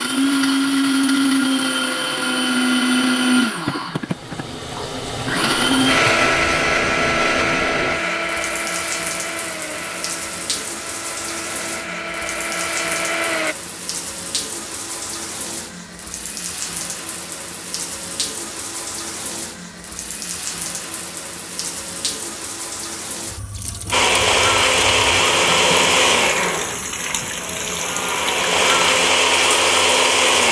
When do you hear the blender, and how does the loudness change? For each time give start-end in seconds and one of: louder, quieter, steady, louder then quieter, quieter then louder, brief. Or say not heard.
0.0-13.6 quieter
23.9-30.4 quieter then louder.